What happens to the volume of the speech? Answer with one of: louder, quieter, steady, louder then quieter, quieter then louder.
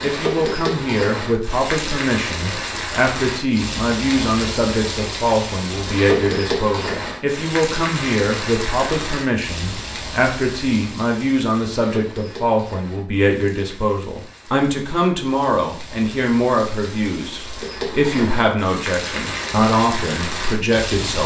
steady.